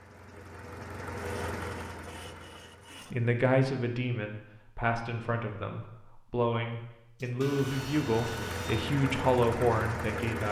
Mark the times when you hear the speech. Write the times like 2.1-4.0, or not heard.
3.1-10.4.